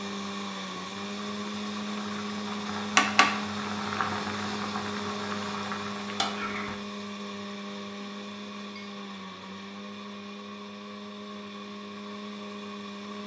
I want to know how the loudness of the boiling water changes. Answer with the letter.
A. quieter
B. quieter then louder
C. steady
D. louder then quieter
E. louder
D.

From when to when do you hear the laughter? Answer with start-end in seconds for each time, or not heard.
6.3-6.8.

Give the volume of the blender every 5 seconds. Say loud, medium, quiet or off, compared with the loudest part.
loud, loud, medium.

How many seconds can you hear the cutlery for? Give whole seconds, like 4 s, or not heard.
not heard.